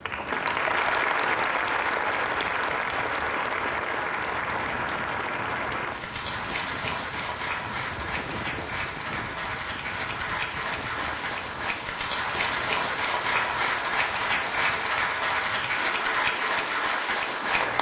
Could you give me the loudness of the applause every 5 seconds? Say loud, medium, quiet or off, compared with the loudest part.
loud, medium, loud, loud.